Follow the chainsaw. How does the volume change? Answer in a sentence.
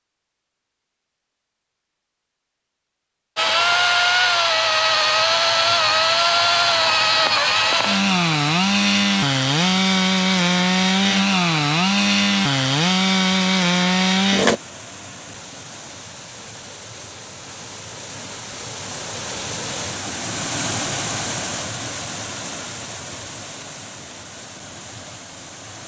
The loudness of the chainsaw stays about the same.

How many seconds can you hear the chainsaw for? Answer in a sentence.
You can hear the chainsaw for 11 seconds altogether.